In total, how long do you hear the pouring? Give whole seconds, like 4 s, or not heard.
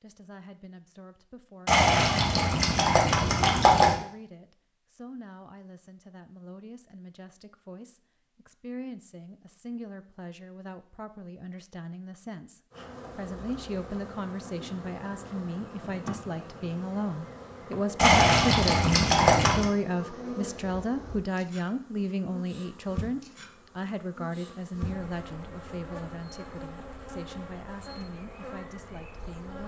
4 s.